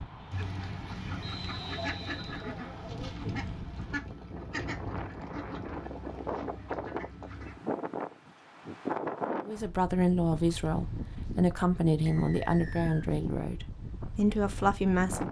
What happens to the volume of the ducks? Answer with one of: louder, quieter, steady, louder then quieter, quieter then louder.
quieter.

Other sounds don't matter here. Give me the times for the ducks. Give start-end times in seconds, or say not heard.
0.3-7.6.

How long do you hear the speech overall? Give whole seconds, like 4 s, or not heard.
6 s.